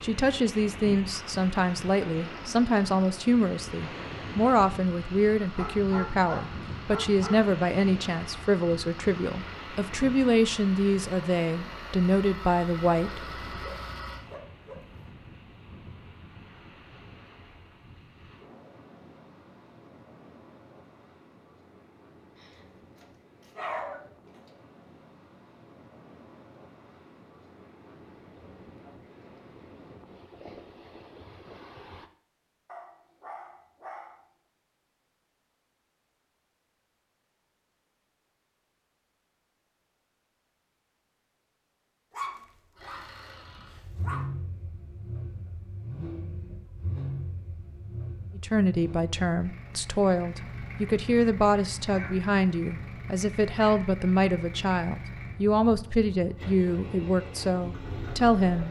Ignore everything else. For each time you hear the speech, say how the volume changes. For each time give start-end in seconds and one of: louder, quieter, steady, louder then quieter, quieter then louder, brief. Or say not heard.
0.0-13.2 steady
48.4-58.6 steady.